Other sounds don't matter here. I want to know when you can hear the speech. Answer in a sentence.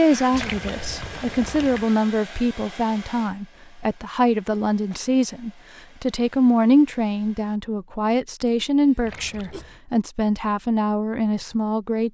The speech can be heard from 0.0 to 12.0 s.